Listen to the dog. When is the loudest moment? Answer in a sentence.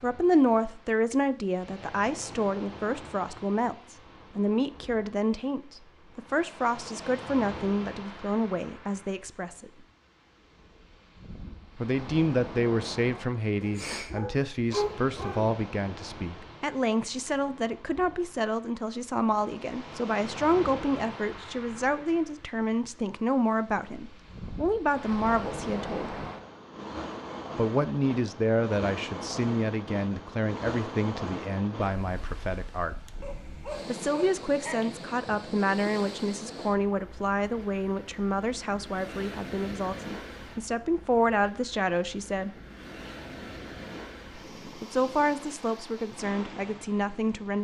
The loudest moment of the dog is at 15 seconds.